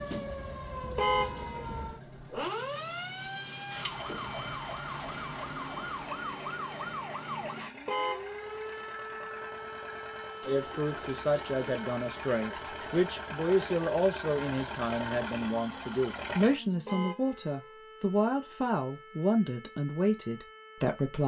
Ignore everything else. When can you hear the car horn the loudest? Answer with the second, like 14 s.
1 s.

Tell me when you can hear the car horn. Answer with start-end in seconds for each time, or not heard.
0.9-1.8, 7.8-8.7, 16.9-17.5.